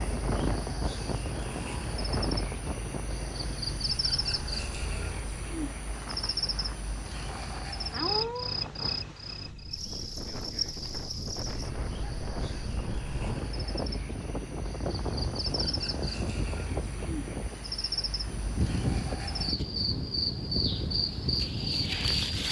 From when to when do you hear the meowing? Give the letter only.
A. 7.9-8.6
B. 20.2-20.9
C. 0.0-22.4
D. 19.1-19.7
A.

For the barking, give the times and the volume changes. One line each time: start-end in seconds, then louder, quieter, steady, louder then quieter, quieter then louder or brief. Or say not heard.
not heard.